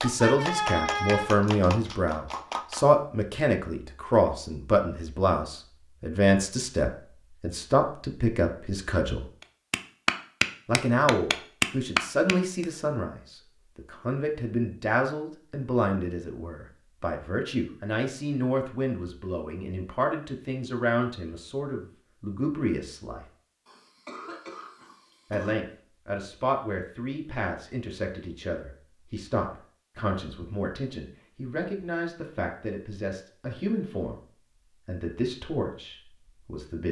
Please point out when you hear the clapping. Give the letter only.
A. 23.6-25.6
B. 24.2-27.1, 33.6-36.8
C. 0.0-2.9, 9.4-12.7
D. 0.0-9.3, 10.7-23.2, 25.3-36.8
C.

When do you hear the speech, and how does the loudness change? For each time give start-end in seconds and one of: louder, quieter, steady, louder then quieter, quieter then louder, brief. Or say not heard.
0.0-9.3 steady
10.7-23.2 steady
25.3-36.8 steady.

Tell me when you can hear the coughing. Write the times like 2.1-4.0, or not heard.
23.6-25.6.